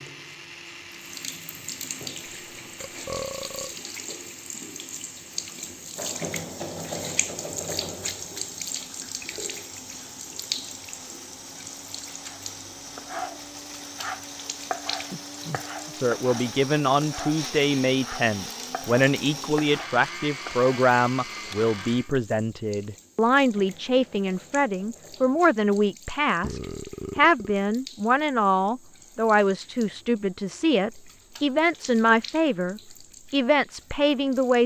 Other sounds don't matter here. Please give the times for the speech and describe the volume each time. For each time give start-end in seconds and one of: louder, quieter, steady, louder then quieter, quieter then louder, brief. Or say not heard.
15.9-34.6 steady.